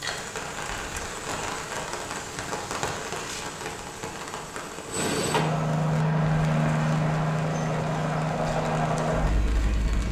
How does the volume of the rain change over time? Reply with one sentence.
The volume of the rain goes down.